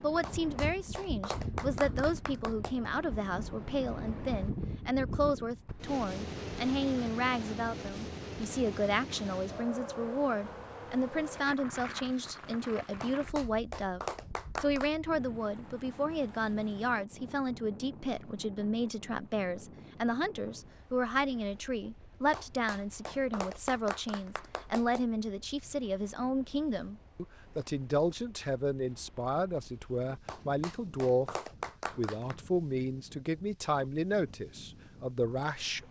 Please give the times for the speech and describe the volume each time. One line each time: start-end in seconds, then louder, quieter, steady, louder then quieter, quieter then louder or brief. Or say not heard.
0.0-14.0 steady
14.6-35.8 steady.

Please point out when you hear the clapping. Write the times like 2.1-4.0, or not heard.
0.2-2.9, 13.0-14.9, 22.3-25.1, 30.2-32.4.